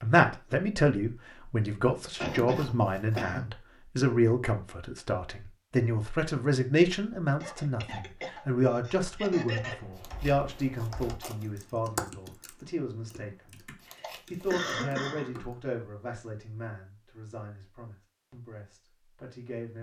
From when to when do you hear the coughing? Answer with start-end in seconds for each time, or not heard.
2.2-3.5, 7.4-9.8, 14.0-15.3.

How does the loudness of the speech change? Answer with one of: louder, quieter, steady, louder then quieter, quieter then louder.
quieter.